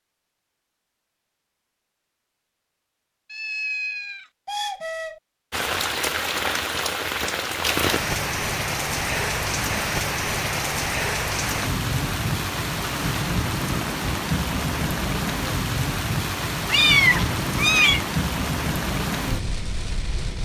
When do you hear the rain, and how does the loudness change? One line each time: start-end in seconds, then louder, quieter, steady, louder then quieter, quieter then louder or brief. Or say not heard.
5.5-20.3 steady.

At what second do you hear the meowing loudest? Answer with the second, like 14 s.
17 s.